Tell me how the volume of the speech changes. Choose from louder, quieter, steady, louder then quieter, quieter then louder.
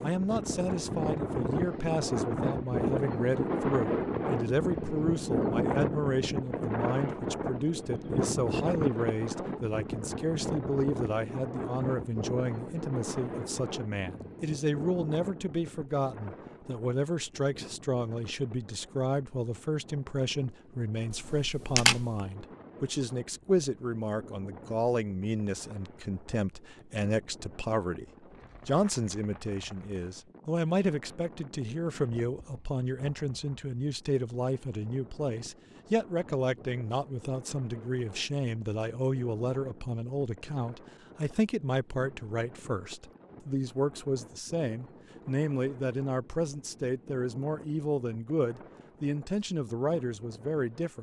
steady.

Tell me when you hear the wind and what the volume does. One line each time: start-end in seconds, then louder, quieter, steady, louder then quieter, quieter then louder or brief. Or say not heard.
0.0-50.9 quieter.